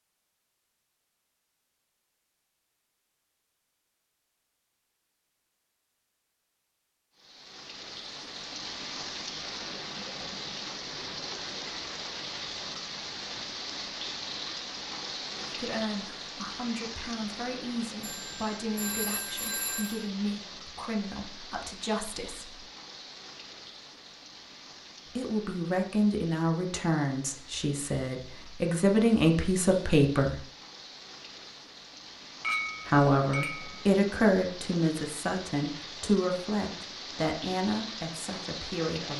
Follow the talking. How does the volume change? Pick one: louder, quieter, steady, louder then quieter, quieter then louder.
louder then quieter.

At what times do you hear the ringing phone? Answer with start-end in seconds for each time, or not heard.
18.0-20.1.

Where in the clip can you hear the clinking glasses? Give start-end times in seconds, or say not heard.
32.4-33.9.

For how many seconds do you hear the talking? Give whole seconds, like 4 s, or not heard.
19 s.